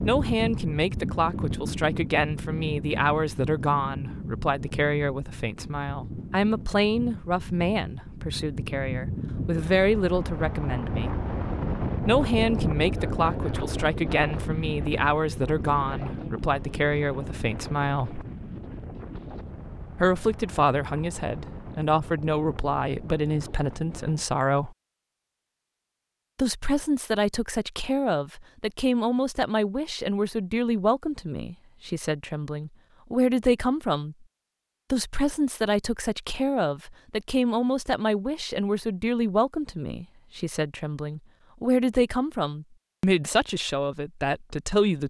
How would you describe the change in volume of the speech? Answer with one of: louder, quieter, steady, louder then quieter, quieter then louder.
steady.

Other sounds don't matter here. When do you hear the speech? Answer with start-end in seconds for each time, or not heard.
0.0-11.2, 12.1-18.2, 19.9-24.7, 26.4-34.1, 34.9-45.0.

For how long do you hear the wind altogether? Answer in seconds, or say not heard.
24 s.